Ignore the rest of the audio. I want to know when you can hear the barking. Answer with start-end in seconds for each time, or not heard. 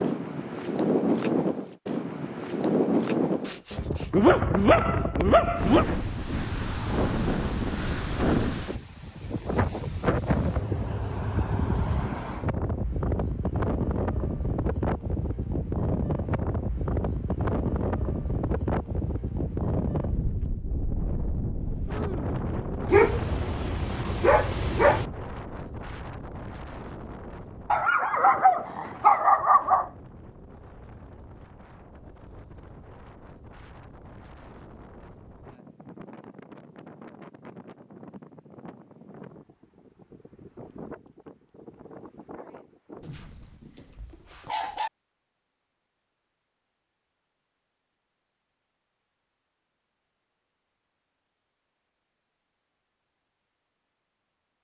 3.5-5.8, 22.9-25.1, 27.7-29.9, 43.0-44.9.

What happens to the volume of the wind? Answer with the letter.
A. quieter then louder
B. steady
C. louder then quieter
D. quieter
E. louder
D.